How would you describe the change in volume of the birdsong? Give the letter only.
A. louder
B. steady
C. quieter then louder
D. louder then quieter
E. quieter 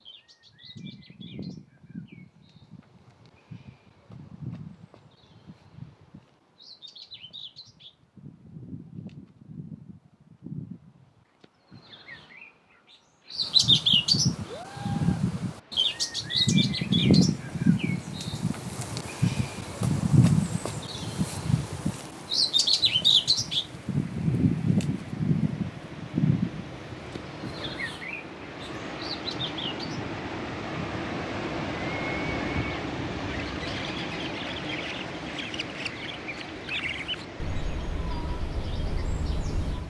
D.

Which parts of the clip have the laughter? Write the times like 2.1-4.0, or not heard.
not heard.